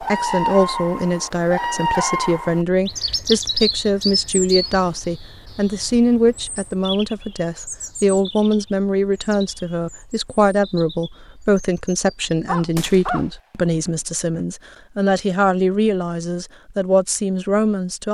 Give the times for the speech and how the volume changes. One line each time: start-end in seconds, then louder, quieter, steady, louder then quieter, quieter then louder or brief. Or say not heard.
0.0-18.0 steady.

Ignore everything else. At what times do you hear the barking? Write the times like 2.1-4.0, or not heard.
12.4-13.2, 13.8-14.4.